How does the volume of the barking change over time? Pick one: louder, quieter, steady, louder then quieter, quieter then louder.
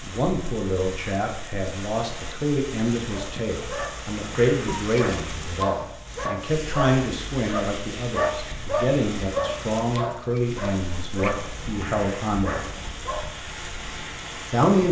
louder then quieter.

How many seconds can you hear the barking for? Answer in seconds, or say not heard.
10 s.